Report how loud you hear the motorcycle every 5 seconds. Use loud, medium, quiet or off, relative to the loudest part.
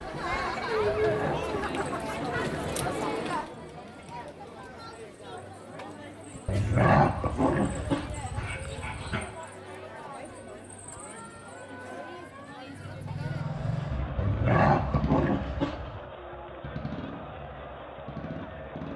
off, off, loud, loud.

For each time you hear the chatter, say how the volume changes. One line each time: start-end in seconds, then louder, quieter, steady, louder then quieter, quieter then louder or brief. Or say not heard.
0.0-18.9 quieter.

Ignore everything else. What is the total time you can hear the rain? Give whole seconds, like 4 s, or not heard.
not heard.